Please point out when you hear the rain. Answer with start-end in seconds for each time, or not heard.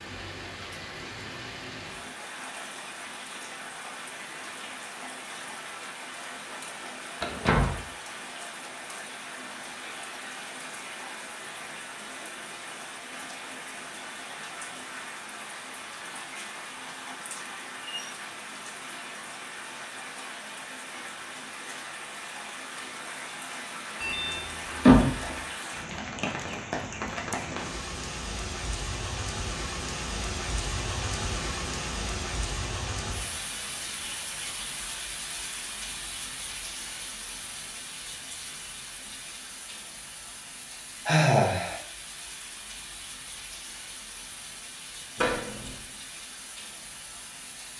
0.0-47.7.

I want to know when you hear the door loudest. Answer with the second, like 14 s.
25 s.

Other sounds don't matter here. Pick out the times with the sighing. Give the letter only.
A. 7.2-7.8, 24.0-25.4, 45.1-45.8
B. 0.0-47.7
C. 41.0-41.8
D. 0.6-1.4
C.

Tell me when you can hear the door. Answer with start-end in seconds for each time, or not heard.
7.2-7.8, 24.0-25.4, 45.1-45.8.